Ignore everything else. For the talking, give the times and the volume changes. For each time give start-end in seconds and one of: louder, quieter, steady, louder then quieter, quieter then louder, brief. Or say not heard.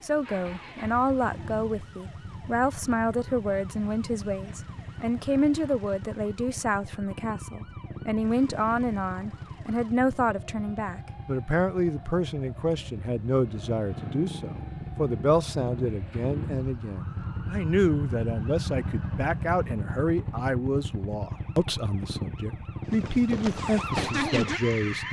0.0-25.0 steady.